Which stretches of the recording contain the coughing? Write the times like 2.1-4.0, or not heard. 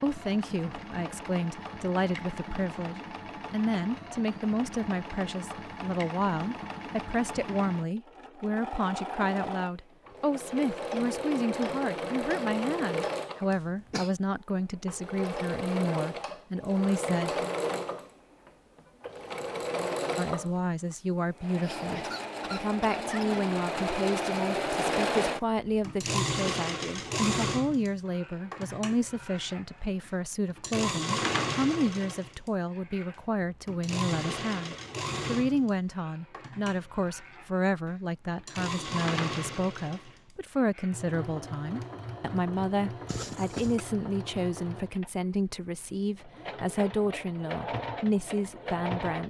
13.5-14.1, 21.6-23.6, 43.0-43.9.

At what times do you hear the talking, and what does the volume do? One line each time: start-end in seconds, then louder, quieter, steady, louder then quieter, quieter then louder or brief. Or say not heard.
0.0-17.4 steady
20.1-49.2 steady.